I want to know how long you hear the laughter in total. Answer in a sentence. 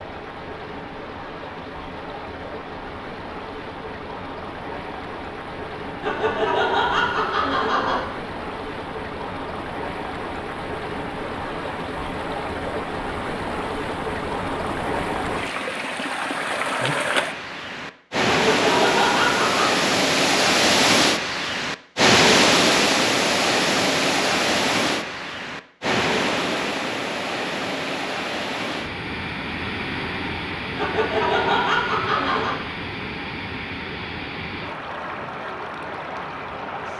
You can hear the laughter for 5 seconds altogether.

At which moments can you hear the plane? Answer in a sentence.
You can't hear the plane here.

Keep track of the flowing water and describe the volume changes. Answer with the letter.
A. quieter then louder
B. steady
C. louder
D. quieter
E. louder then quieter
E.